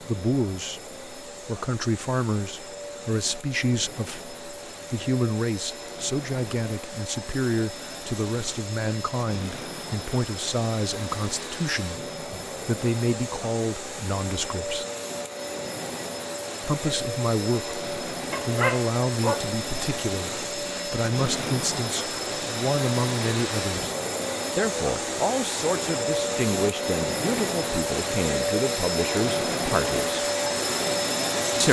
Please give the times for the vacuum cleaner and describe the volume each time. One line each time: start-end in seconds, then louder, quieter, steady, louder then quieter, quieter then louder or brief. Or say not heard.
0.0-31.6 louder.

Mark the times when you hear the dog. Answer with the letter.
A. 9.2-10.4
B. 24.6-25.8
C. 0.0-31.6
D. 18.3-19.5
D.